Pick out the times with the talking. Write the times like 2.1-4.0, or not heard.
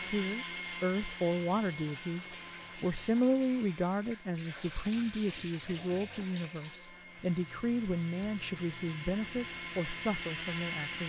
0.0-11.0.